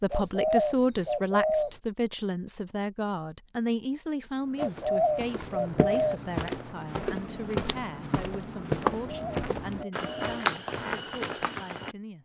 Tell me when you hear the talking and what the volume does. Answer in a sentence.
The talking can be heard from 0.0 to 12.1 s, getting quieter.